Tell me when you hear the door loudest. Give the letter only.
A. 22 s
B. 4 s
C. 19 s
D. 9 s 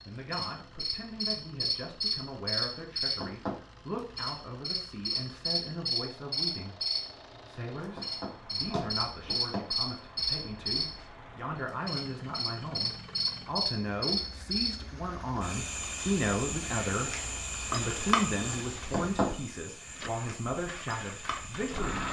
C.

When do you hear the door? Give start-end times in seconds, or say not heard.
3.1-3.6, 8.0-9.7, 18.9-19.4.